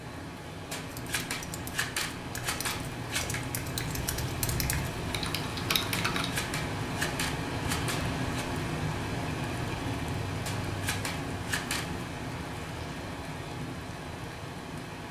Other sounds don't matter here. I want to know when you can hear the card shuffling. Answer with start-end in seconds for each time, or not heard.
0.7-3.4, 6.2-8.4, 10.4-12.0.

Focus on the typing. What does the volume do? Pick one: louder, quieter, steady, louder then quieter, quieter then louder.
louder.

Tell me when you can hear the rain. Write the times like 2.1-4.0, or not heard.
0.0-15.0.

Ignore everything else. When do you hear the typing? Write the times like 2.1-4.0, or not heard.
0.8-6.3.